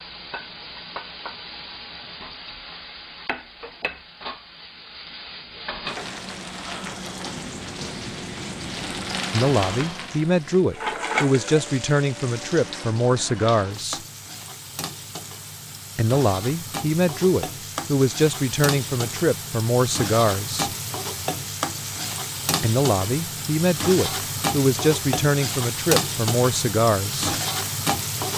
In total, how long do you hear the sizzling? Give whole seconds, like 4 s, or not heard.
28 s.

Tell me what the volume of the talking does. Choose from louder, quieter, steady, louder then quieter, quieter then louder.
steady.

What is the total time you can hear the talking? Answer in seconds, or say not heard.
14 s.